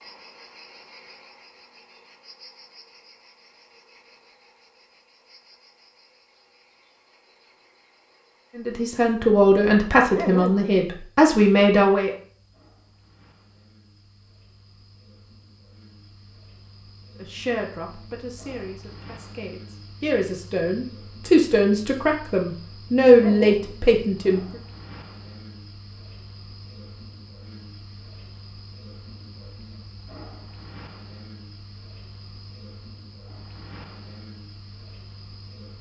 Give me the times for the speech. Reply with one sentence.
You can hear the speech from 8.6 to 12.1 s and from 17.2 to 24.4 s.